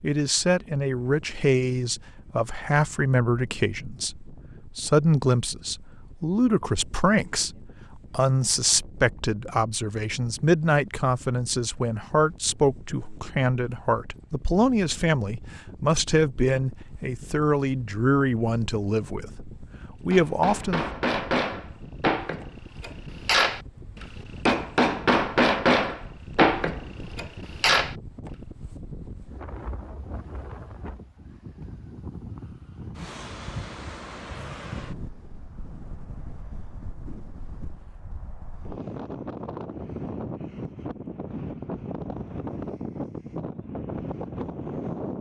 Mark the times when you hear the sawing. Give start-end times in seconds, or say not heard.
not heard.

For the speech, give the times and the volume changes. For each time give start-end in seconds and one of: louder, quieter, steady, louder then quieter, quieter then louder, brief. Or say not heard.
0.0-21.0 steady.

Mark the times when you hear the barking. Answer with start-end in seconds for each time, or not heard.
not heard.